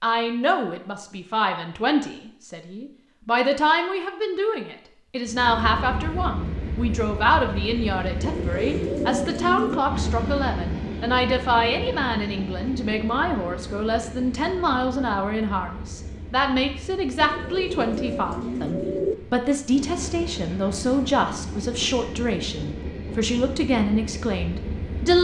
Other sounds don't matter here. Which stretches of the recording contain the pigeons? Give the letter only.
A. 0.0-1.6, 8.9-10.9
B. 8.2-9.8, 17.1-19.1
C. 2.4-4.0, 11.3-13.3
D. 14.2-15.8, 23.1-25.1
B.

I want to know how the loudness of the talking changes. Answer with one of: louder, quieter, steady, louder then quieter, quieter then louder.
steady.